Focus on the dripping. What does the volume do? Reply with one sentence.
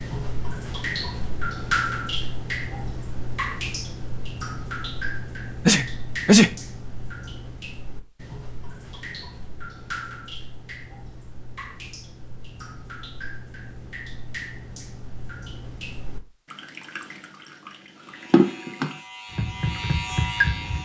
The loudness of the dripping goes down, then up.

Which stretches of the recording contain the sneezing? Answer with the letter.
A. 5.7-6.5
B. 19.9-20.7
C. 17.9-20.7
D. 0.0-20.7
A.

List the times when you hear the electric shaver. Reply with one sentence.
You can hear the electric shaver from 17.9 to 20.7 s.